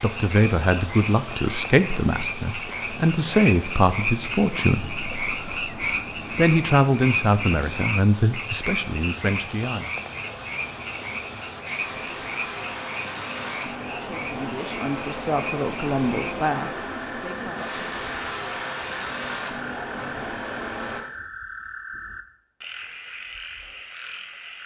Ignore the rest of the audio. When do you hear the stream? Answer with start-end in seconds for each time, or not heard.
0.0-21.0.